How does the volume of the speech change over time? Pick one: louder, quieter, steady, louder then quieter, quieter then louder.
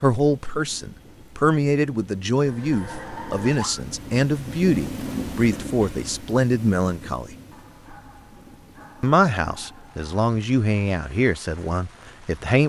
steady.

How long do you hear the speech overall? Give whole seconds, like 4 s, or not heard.
11 s.